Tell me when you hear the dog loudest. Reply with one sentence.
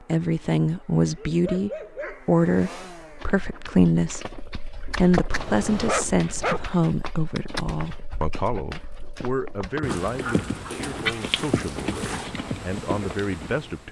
The loudest moment of the dog is at 6 seconds.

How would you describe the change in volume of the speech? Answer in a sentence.
The loudness of the speech goes down.